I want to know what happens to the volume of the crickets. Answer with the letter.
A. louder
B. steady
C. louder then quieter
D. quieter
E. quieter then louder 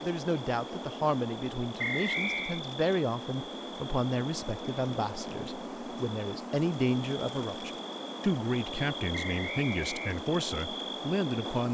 B.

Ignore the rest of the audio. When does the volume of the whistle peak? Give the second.
2 s.